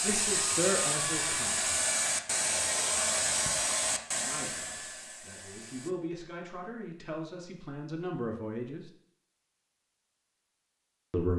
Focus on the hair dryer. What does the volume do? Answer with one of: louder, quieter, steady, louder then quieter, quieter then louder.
quieter.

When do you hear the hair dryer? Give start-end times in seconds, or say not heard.
0.0-6.0.